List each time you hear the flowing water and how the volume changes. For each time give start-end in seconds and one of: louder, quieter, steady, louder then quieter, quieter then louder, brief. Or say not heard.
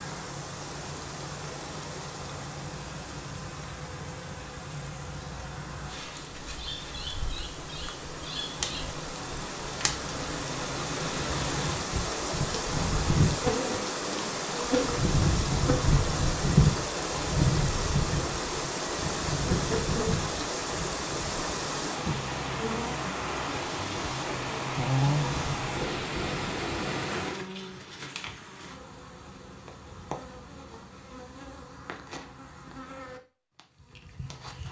0.0-27.4 louder.